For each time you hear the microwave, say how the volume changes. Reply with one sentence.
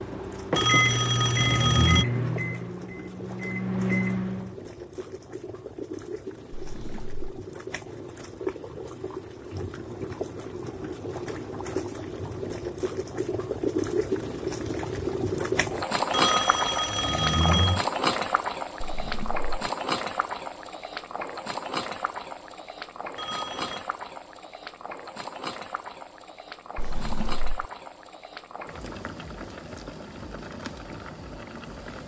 You can hear the microwave from 0.0 to 4.5 s, getting quieter then louder.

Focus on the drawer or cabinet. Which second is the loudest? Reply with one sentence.
The loudest moment of the drawer or cabinet is at 27 seconds.